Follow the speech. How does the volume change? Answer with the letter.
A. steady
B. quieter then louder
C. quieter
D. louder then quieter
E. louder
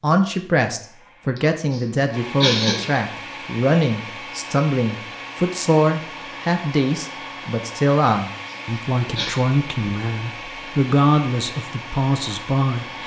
A.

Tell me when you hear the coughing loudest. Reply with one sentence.
The volume of the coughing peaks at 3 seconds.